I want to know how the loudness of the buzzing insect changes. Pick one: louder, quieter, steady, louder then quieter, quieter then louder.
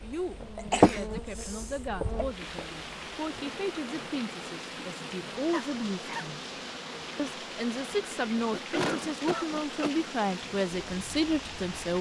quieter.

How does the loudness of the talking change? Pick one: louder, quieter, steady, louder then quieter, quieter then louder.
louder.